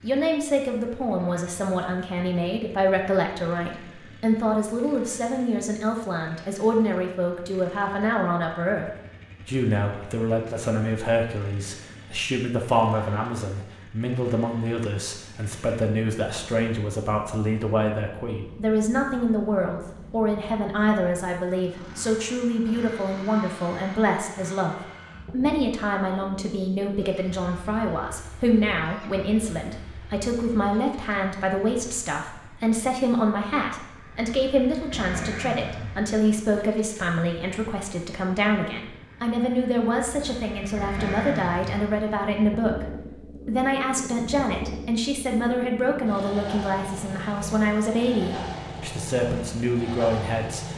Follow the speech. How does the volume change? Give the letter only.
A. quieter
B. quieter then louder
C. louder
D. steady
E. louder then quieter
D.